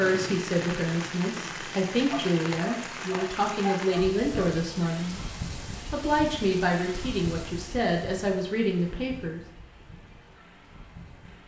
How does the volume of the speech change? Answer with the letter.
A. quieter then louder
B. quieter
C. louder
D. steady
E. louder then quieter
D.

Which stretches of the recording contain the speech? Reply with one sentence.
You can hear the speech from 0.0 to 5.2 s and from 5.9 to 9.4 s.